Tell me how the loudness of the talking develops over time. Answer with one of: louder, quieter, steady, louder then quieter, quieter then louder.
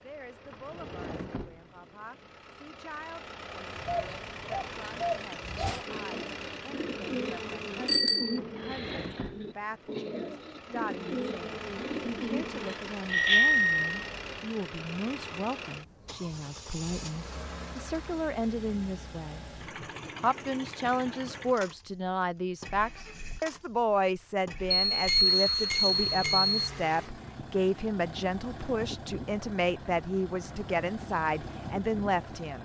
louder.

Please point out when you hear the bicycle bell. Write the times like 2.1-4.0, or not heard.
7.8-8.3, 13.1-14.1, 24.9-26.6.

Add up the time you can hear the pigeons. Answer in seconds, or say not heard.
9 s.